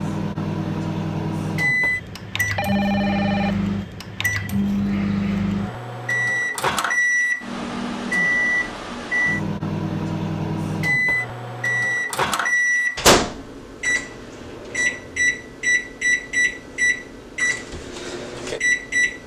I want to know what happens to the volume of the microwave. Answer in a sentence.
The volume of the microwave stays about the same.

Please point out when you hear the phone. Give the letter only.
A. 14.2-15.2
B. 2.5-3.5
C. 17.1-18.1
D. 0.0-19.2
B.